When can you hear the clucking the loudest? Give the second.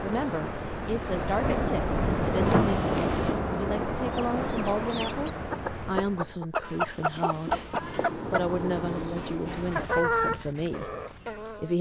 10 s.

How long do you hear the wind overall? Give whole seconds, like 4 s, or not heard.
6 s.